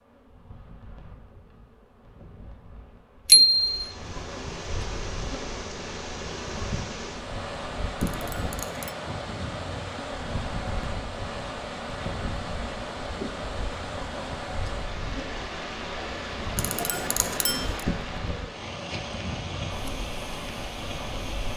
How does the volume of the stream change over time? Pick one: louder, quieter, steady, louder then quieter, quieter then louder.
steady.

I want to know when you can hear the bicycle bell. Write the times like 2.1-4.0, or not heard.
3.2-3.8, 8.0-8.9, 16.6-17.7.